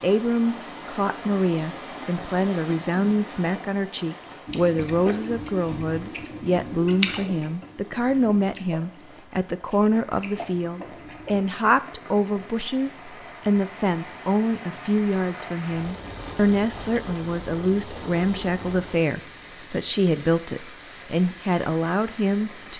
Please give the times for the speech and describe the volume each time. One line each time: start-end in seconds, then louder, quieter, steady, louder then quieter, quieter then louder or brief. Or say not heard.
0.0-22.7 steady.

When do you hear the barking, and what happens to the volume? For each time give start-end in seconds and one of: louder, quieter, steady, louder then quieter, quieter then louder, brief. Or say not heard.
not heard.